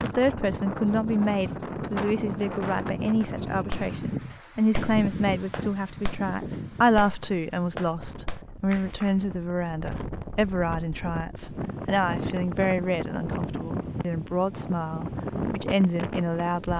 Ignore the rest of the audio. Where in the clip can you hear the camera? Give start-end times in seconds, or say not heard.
not heard.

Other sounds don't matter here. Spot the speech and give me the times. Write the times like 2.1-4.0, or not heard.
0.0-16.7.